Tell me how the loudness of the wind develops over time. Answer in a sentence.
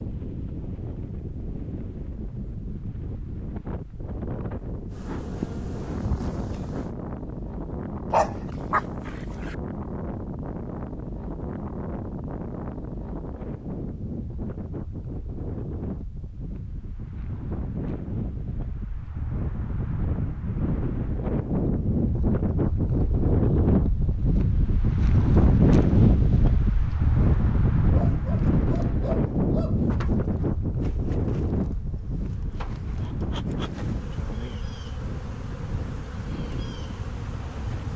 The loudness of the wind goes up, then down.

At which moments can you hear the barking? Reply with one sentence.
You can hear the barking from 8.1 to 9.6 s and from 27.9 to 29.9 s.